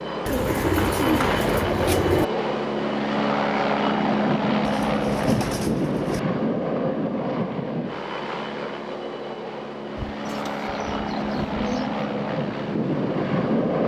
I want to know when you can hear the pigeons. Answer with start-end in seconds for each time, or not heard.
0.2-2.2, 4.7-6.2, 10.1-12.0.